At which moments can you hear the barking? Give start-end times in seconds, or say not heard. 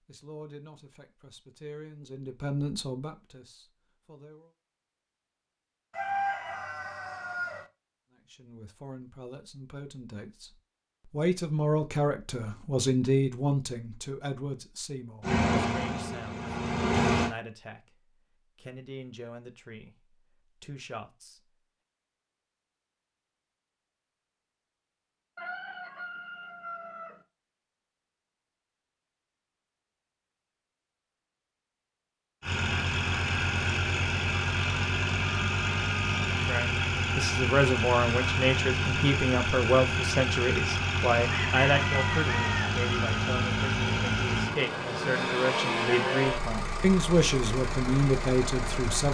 not heard.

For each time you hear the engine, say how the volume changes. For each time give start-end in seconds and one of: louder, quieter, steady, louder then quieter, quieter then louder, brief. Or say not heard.
15.2-17.3 brief
32.4-49.0 steady.